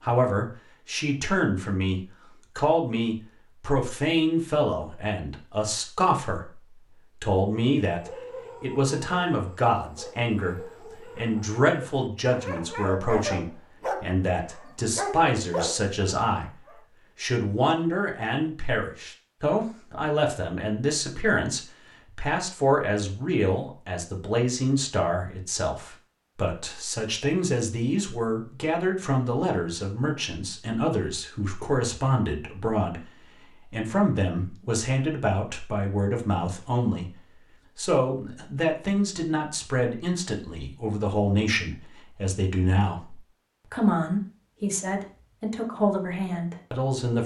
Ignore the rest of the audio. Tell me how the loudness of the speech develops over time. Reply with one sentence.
The loudness of the speech stays about the same.